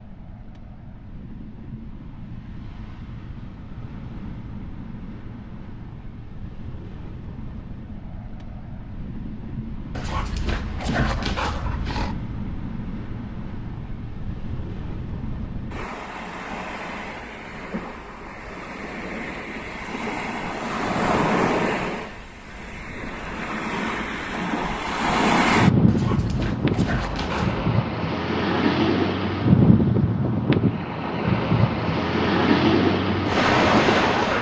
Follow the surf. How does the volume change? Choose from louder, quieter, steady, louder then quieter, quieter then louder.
louder.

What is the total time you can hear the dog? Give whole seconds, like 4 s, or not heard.
4 s.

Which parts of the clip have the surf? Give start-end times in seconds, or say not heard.
0.0-34.3.